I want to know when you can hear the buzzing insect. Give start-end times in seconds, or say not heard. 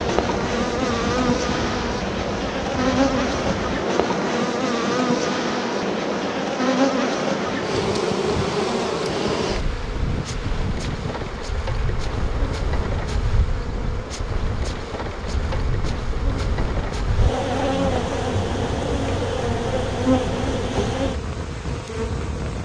0.0-22.6.